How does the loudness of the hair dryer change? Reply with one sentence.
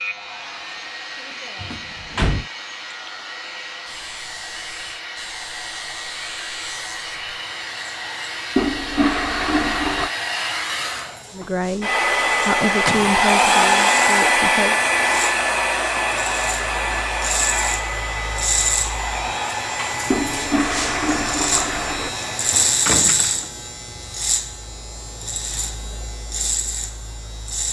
The volume of the hair dryer goes up, then down.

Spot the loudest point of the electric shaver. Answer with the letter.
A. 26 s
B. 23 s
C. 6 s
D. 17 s
B.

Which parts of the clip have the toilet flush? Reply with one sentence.
You can hear the toilet flush from 8.6 to 10.1 s and from 20.1 to 22.1 s.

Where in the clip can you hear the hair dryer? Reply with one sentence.
The hair dryer can be heard from 0.0 to 22.8 s.